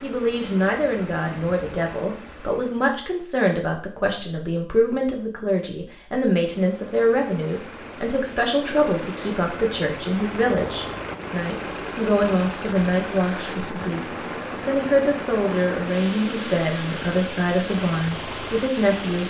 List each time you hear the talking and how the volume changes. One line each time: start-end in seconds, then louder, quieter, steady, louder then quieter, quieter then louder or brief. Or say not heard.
0.0-19.2 steady.